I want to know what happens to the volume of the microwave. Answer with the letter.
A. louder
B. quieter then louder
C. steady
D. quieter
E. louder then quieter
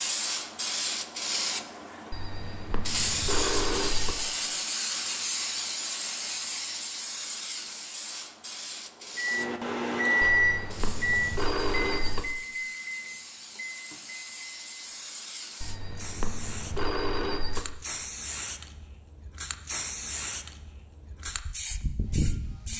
D.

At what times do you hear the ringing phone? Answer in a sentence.
You can hear the ringing phone from 2.1 to 4.2 s, from 10.2 to 12.2 s and from 15.6 to 17.6 s.